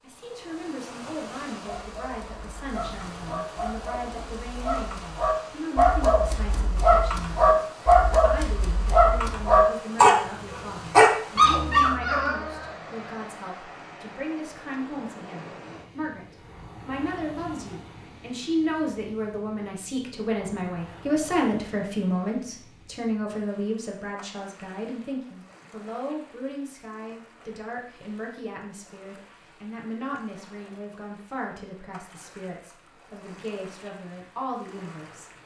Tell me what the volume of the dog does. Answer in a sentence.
The volume of the dog goes up.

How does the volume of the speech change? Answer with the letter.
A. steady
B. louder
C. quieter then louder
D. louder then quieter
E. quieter
D.